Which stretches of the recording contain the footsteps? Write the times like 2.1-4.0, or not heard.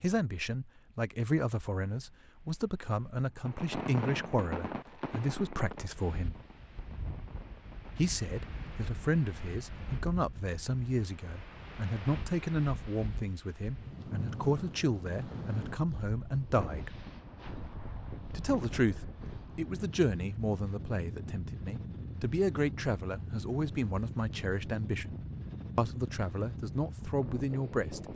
not heard.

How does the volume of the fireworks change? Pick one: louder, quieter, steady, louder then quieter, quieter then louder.
quieter then louder.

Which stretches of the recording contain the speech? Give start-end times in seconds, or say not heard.
0.0-6.3, 8.0-17.0, 18.3-25.1, 25.8-28.0.